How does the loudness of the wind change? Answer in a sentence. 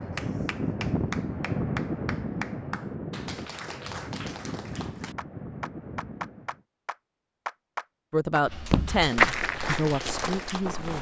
The loudness of the wind goes down.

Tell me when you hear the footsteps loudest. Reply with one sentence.
The loudest moment of the footsteps is at 9 seconds.